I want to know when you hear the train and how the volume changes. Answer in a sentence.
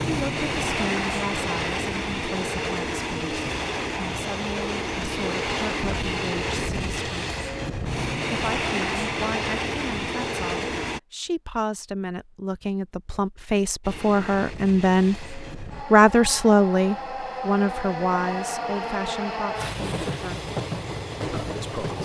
The train can be heard from 0.0 to 11.0 s, at a steady volume; and from 13.8 to 21.9 s, getting louder.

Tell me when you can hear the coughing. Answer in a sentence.
You can't hear the coughing here.